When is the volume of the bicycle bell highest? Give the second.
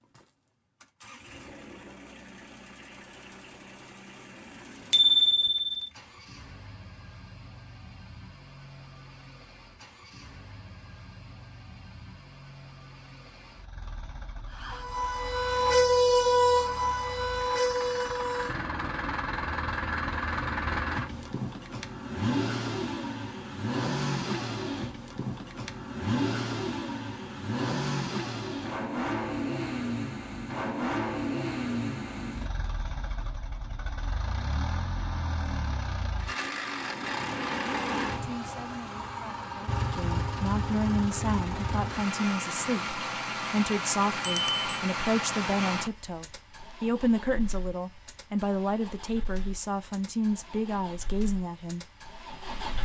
5 s.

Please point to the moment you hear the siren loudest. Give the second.
16 s.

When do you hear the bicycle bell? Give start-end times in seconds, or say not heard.
4.9-5.7, 44.2-44.8.